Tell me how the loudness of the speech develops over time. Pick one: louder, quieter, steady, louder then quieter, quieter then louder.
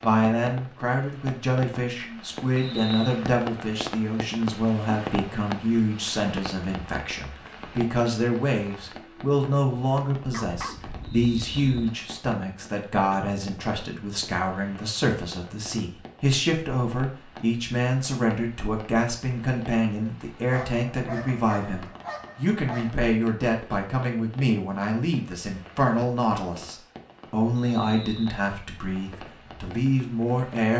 steady.